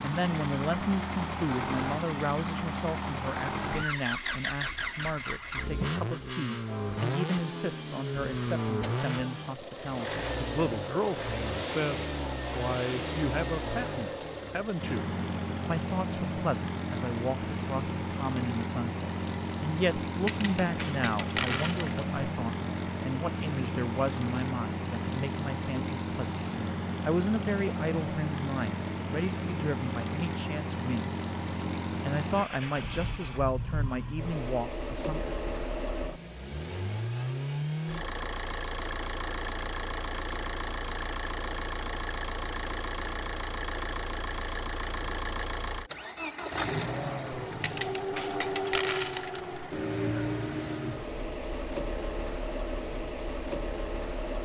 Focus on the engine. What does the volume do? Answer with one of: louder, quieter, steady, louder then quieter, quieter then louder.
steady.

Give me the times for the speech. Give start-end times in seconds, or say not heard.
0.0-31.1, 31.9-35.4.